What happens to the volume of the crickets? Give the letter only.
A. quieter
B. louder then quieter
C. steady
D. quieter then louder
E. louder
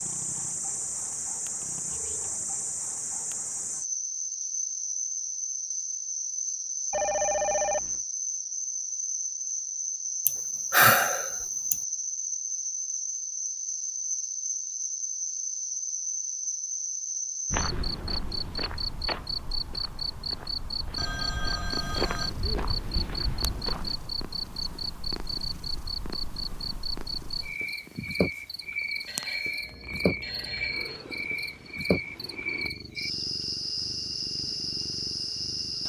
C.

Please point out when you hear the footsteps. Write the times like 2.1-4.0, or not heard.
17.5-23.9.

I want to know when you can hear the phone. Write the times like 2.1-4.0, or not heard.
6.9-8.0, 20.9-22.3, 29.1-31.1.